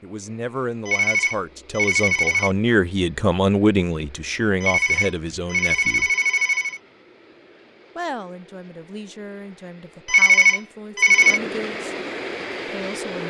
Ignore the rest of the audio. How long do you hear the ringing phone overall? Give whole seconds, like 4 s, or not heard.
5 s.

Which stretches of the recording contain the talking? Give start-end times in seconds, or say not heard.
0.0-6.1, 8.0-11.9, 12.7-13.2.